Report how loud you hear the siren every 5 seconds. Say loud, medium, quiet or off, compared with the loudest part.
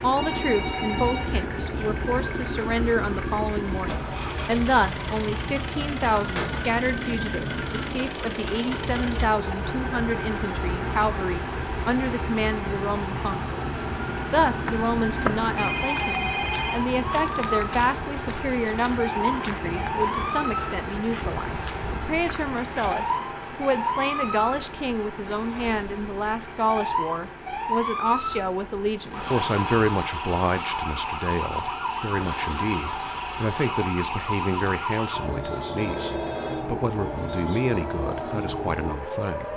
medium, medium, medium, loud, loud, loud, loud, loud.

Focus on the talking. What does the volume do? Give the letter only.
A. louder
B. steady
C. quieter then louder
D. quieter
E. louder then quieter
B.